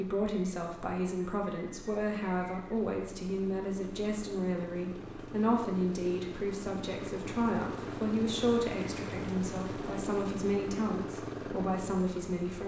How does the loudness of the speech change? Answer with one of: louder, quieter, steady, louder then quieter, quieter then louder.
steady.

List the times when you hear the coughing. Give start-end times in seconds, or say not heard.
not heard.